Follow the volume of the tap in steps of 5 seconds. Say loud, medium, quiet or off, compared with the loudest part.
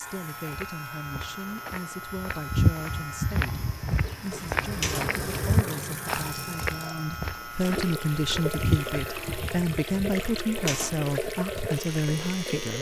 medium, loud, loud.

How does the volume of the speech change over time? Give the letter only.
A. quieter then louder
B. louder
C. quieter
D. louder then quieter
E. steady
B.